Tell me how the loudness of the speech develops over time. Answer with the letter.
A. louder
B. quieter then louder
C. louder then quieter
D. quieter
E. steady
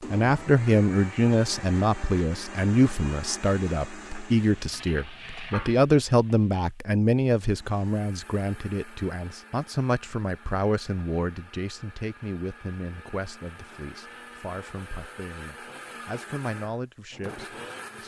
D.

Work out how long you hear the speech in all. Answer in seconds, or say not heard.
18 s.